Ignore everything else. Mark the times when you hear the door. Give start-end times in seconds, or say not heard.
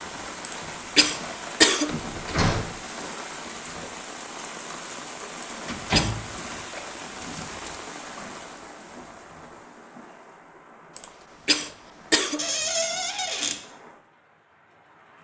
1.9-2.7, 5.7-6.5, 12.3-13.6.